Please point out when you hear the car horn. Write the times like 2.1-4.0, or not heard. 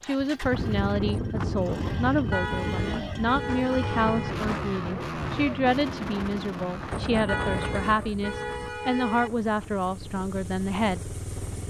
2.3-4.3, 7.2-9.3.